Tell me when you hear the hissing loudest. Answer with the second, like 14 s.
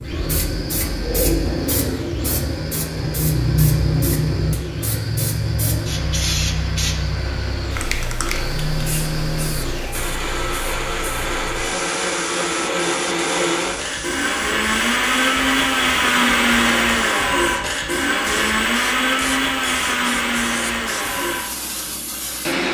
4 s.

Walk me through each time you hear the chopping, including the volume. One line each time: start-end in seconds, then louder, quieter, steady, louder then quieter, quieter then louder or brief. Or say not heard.
not heard.